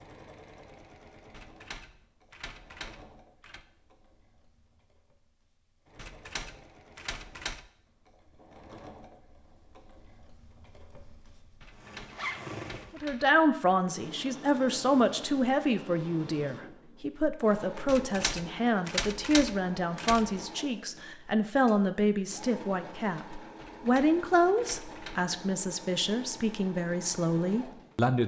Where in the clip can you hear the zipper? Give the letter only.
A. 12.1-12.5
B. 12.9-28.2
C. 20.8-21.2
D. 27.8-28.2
A.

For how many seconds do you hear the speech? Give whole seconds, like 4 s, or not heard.
15 s.